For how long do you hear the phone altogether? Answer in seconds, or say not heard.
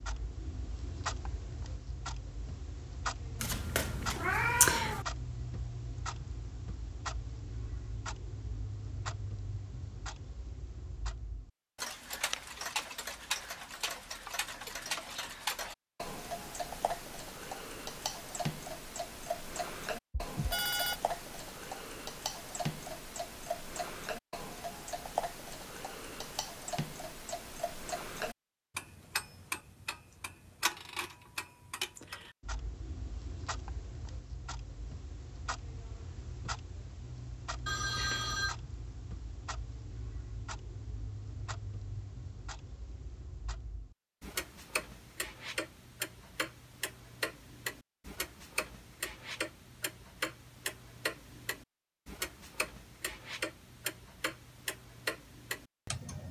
2 s.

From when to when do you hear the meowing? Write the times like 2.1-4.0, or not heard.
3.4-5.0.